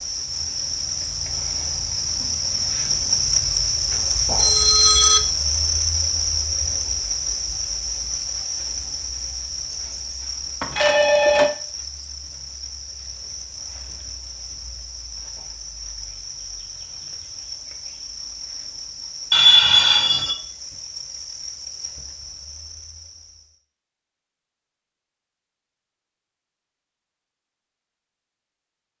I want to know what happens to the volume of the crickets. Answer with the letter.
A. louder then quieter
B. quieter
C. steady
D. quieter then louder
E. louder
B.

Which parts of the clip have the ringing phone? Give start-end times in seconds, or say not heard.
4.3-5.2, 10.6-11.5, 19.3-20.4.